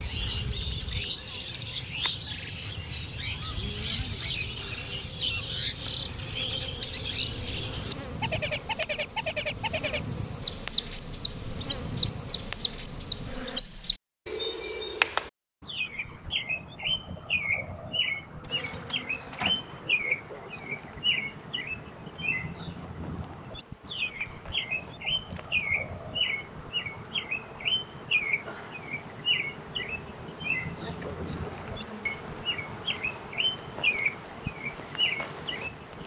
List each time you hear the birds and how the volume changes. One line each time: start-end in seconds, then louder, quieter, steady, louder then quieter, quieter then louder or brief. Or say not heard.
0.0-36.0 steady.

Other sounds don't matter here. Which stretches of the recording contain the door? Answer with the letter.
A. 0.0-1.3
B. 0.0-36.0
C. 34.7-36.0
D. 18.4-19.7
D.